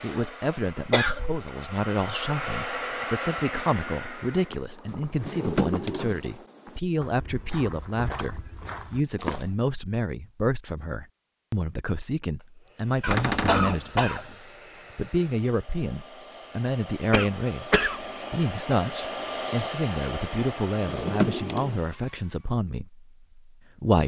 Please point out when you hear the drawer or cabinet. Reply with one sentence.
The drawer or cabinet can be heard from 5.2 to 6.2 s, from 13.1 to 13.8 s and from 20.8 to 21.8 s.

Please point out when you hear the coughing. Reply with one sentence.
The coughing can be heard from 0.9 to 1.5 s, from 13.0 to 14.3 s and from 17.1 to 18.1 s.